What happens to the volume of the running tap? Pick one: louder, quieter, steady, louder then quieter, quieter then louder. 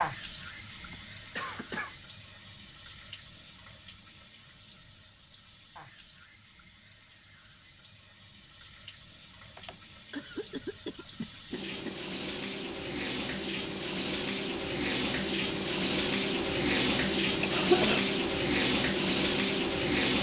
quieter then louder.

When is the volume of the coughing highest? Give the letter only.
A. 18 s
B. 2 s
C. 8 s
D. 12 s
A.